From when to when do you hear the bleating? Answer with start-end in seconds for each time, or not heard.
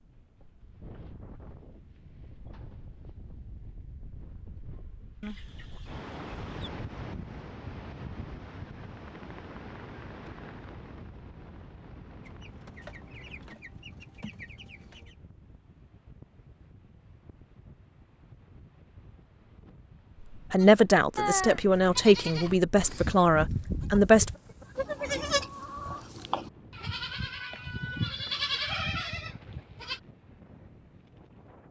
20.6-30.0.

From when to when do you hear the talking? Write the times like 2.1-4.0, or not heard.
20.5-24.3.